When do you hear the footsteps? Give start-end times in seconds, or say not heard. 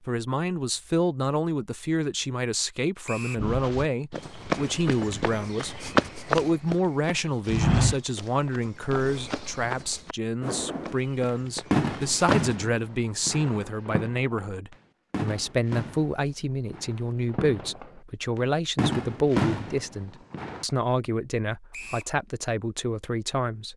3.4-12.6.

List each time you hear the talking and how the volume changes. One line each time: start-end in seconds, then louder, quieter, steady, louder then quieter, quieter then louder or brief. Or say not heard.
0.1-23.7 steady.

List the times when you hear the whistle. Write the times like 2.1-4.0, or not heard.
3.0-3.5, 21.7-22.1.